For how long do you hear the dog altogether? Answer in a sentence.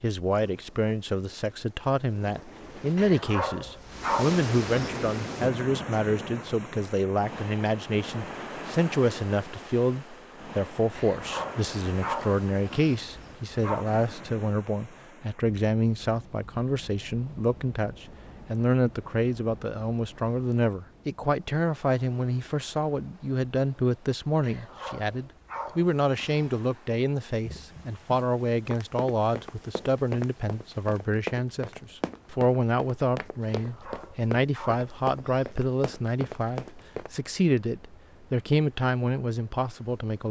You can hear the dog for 9 seconds altogether.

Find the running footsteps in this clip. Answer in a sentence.
The running footsteps can be heard from 27.4 to 37.1 s.